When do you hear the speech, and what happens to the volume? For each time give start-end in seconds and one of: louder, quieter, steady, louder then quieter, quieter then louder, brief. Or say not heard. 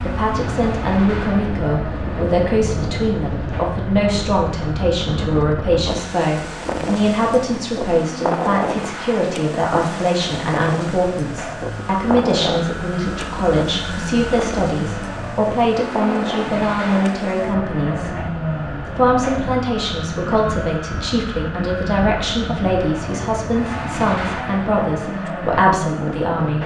0.0-26.6 steady.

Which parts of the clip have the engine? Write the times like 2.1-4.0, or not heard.
0.0-26.6.